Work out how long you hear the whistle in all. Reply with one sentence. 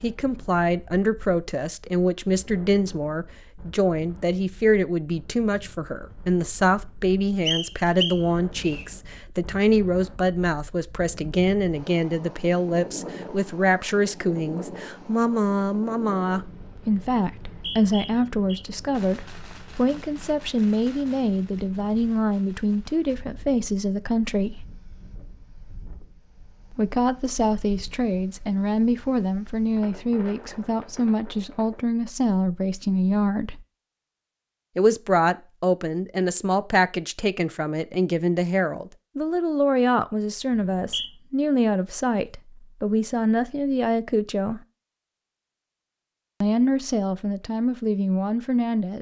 You can hear the whistle for 3 seconds altogether.